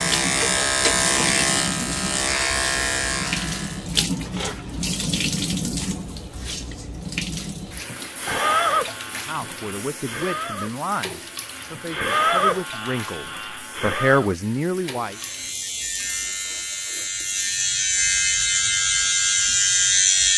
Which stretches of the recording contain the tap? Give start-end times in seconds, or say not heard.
0.0-17.8.